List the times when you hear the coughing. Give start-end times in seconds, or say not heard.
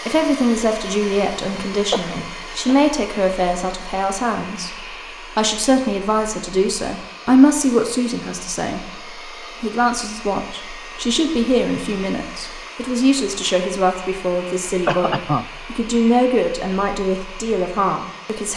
1.9-2.9, 14.7-15.6.